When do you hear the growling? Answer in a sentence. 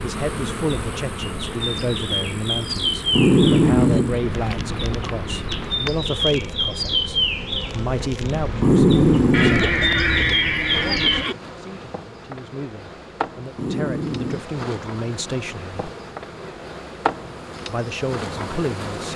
The growling can be heard from 3.1 to 4.2 s, from 8.6 to 10.3 s and from 13.6 to 14.4 s.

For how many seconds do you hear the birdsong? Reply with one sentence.
The birdsong can be heard for 11 seconds in total.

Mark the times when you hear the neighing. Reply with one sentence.
You can hear the neighing from 9.3 to 11.3 s.